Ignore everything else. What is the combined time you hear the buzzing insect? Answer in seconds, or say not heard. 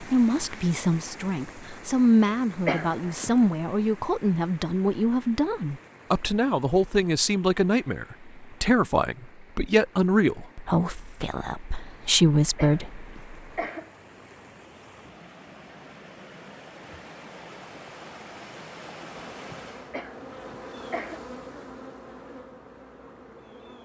5 s.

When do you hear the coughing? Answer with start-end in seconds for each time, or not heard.
2.6-3.5, 12.6-13.9, 19.9-21.2.